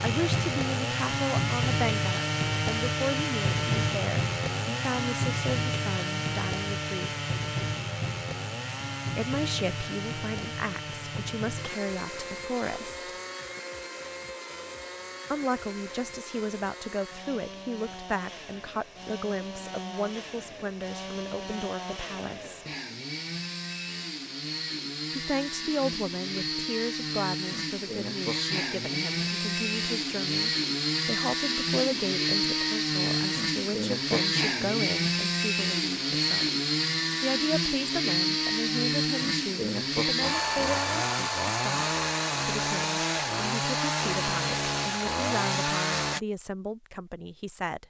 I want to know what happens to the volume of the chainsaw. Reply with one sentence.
The loudness of the chainsaw goes down, then up.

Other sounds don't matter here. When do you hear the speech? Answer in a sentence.
You can hear the speech from 0.0 to 7.1 s, from 9.2 to 13.1 s, from 15.3 to 22.6 s, from 25.1 to 36.5 s and from 37.2 to 47.8 s.